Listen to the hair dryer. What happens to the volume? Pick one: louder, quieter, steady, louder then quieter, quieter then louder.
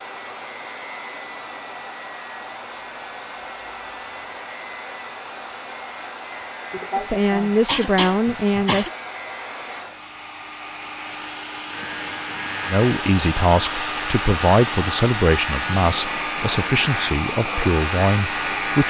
louder.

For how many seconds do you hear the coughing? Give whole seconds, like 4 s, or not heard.
2 s.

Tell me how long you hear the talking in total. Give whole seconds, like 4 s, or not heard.
8 s.